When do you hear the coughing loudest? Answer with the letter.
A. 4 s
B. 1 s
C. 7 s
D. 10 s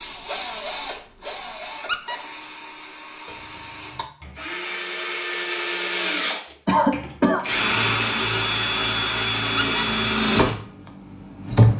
C.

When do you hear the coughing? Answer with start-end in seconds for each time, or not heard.
3.2-4.0, 6.7-7.5.